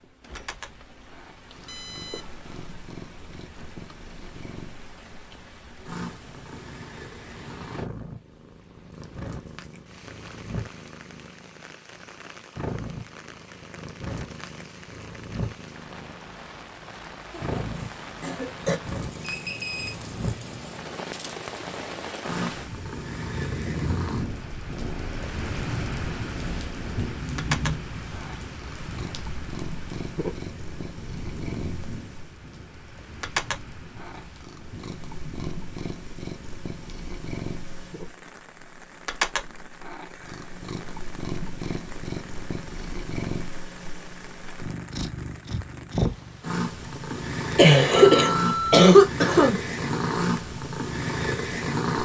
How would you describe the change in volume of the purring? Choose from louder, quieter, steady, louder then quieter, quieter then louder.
louder.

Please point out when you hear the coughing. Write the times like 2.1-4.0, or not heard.
17.3-18.8, 47.5-49.5.